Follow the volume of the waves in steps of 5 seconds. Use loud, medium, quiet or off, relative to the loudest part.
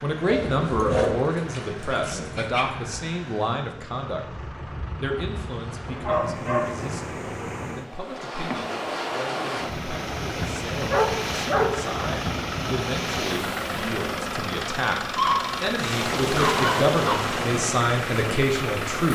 medium, loud, loud, loud.